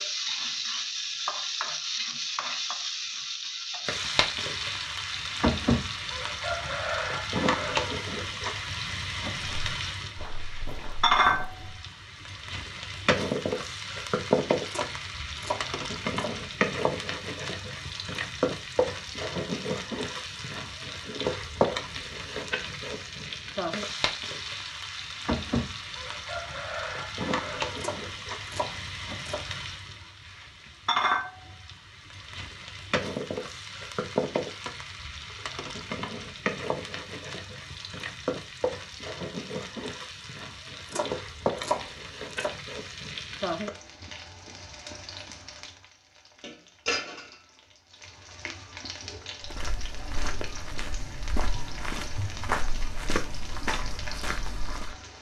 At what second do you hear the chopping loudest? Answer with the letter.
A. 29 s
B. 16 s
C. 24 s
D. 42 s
D.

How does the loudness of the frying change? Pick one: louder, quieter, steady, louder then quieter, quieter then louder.
quieter.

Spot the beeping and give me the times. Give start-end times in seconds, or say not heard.
not heard.